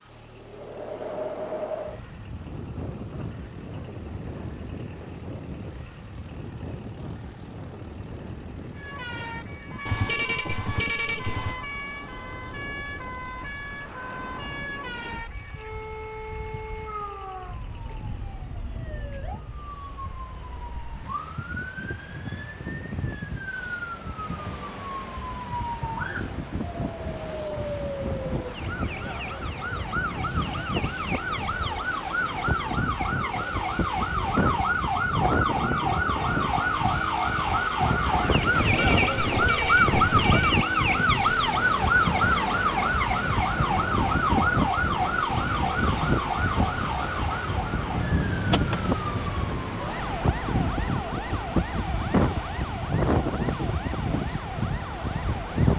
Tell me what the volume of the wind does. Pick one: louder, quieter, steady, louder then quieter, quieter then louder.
quieter then louder.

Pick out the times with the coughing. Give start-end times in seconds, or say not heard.
not heard.